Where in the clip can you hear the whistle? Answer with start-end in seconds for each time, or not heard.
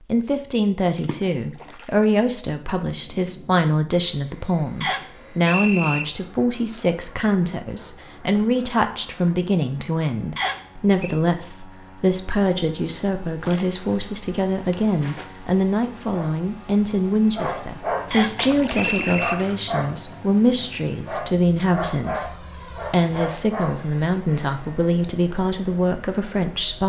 4.8-6.0, 10.3-11.2, 18.1-19.4.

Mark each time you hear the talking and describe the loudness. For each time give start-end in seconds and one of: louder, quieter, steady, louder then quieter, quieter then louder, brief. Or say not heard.
0.1-26.8 steady.